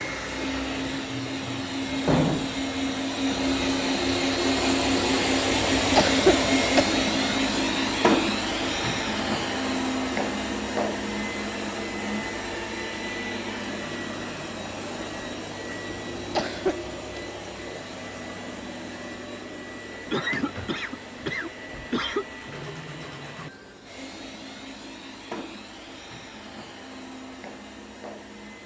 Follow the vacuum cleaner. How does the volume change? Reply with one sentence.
The loudness of the vacuum cleaner goes down.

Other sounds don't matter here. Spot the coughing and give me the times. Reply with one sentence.
You can hear the coughing from 5.5 to 6.8 s, from 15.9 to 17.2 s and from 20.1 to 22.2 s.